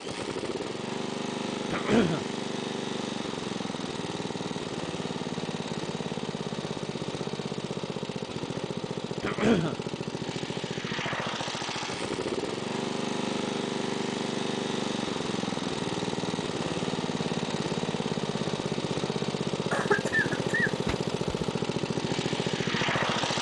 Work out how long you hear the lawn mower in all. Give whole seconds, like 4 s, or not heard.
23 s.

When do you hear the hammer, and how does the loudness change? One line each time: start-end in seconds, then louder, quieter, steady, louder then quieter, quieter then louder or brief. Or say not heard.
not heard.